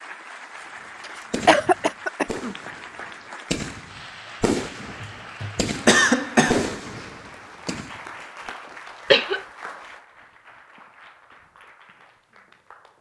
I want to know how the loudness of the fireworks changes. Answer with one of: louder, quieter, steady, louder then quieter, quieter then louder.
louder then quieter.